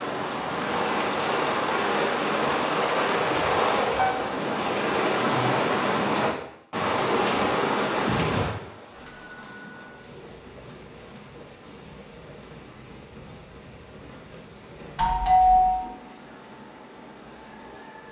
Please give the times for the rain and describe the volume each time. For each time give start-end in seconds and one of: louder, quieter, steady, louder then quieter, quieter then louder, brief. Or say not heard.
0.0-18.0 quieter.